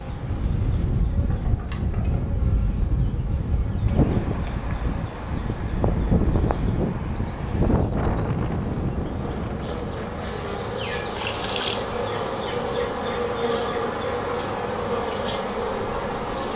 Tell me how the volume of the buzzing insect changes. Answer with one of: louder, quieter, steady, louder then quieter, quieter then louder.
louder.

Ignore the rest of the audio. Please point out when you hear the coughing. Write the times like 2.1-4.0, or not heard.
not heard.